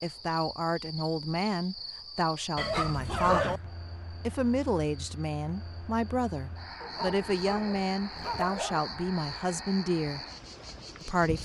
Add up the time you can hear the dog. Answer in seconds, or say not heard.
3 s.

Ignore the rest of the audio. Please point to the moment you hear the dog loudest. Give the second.
3 s.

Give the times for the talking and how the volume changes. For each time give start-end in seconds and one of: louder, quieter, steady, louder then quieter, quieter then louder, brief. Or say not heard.
0.0-10.2 steady
11.0-11.4 brief.